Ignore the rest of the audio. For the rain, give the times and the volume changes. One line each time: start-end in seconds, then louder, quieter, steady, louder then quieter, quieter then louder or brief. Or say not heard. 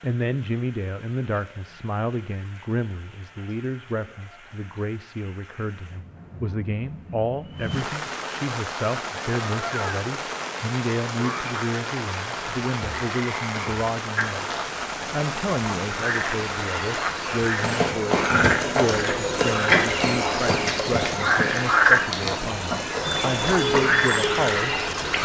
0.0-17.9 louder.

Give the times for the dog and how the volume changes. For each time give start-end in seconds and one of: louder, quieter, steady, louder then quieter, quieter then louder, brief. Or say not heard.
not heard.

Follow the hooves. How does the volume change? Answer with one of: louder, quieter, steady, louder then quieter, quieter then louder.
quieter.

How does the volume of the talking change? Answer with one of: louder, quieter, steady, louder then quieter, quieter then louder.
steady.